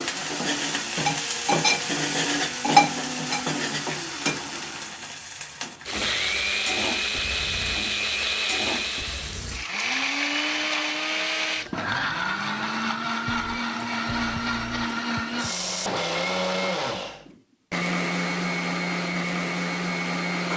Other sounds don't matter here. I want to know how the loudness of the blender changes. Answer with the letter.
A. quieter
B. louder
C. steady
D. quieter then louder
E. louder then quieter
B.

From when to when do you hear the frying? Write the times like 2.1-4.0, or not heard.
0.0-10.9.